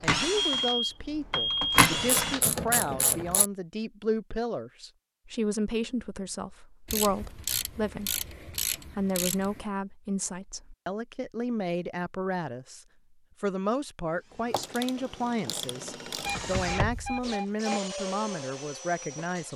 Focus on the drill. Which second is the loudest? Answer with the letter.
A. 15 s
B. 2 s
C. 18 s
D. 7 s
B.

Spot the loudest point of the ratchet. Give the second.
3 s.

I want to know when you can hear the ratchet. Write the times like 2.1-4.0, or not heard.
1.8-3.5, 6.8-9.7, 14.4-16.4.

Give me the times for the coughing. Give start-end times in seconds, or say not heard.
not heard.